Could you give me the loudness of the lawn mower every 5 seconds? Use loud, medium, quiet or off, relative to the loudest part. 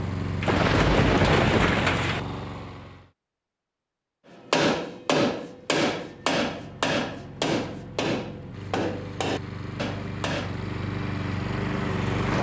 loud, medium, loud.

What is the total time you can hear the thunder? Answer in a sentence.
You can hear the thunder for 2 seconds altogether.